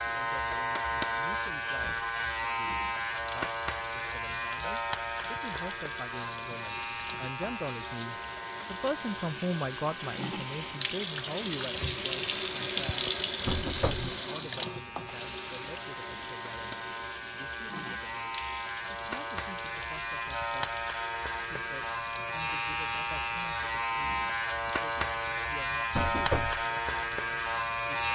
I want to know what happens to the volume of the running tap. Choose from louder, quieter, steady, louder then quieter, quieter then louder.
louder then quieter.